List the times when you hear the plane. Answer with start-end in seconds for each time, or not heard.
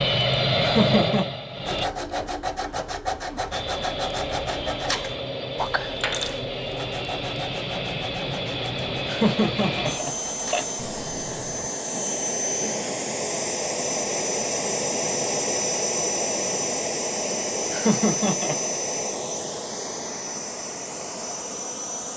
0.0-1.9, 3.5-22.1.